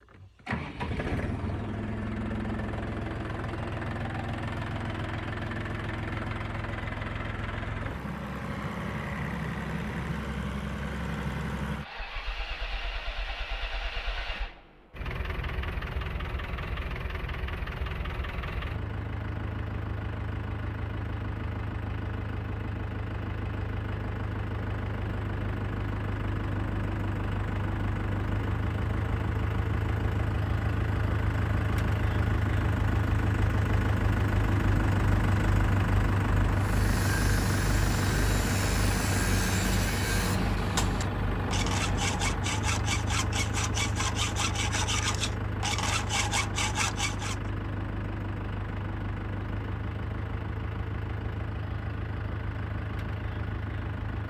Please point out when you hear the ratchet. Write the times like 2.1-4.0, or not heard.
not heard.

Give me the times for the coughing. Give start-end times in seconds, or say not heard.
not heard.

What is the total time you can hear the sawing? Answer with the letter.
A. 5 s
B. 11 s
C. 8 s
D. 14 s
B.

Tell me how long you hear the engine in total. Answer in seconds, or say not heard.
54 s.